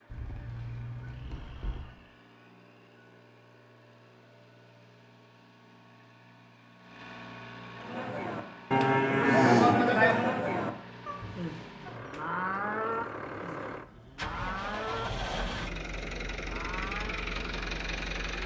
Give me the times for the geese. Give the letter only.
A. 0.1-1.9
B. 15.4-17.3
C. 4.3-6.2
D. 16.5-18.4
A.